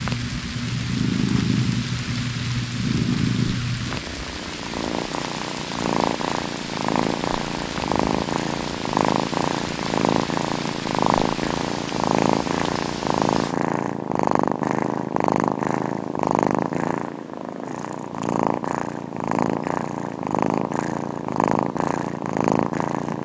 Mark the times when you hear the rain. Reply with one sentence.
The rain can be heard from 0.0 to 13.6 s.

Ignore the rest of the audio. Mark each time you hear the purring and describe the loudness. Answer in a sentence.
The purring can be heard from 0.0 to 23.2 s, at a steady volume.